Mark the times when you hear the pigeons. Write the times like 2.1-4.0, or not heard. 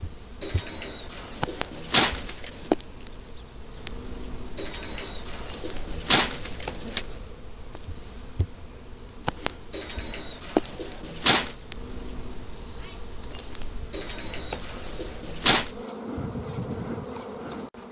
0.4-2.5, 4.5-7.0, 9.7-11.6, 13.9-15.7.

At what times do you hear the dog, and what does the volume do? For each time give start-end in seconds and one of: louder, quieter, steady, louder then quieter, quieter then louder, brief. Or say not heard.
not heard.